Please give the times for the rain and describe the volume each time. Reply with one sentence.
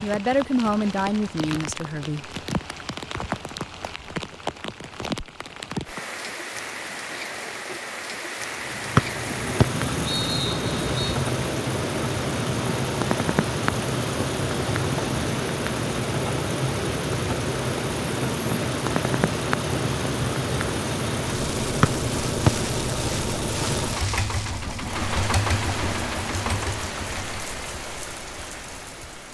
The rain can be heard from 0.0 to 29.2 s, at a steady volume.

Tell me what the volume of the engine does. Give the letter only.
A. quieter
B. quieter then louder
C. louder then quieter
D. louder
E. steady
E.